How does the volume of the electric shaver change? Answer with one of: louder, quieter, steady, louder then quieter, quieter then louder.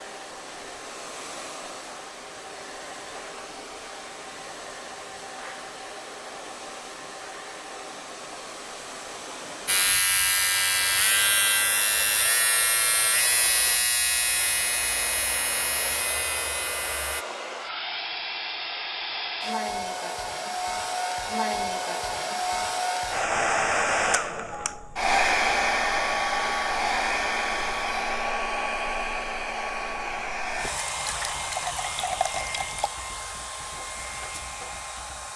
quieter.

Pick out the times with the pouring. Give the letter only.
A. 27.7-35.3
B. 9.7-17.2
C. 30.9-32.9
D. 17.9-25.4
C.